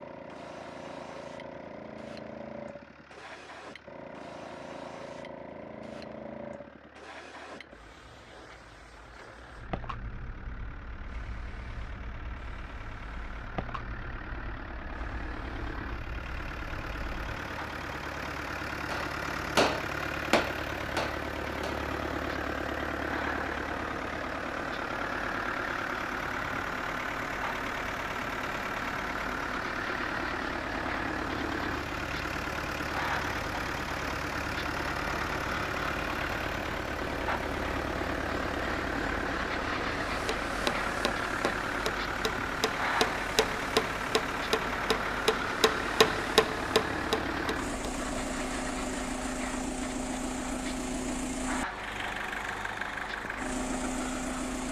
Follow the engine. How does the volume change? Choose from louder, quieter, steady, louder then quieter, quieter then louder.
louder.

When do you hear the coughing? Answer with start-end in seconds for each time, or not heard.
not heard.